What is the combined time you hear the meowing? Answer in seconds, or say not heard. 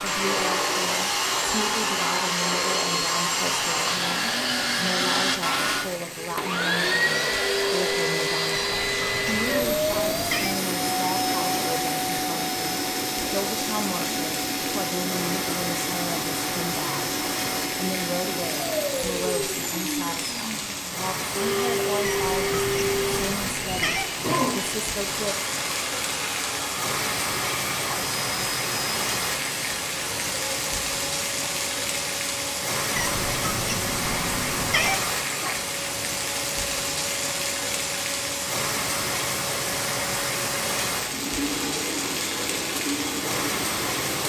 6 s.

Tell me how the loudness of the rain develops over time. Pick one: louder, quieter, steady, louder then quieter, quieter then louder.
louder.